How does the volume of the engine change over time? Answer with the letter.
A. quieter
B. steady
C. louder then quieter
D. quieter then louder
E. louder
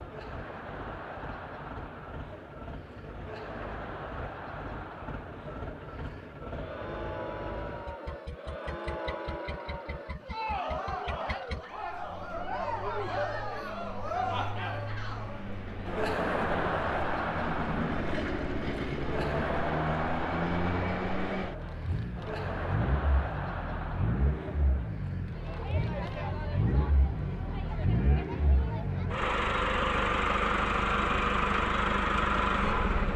E.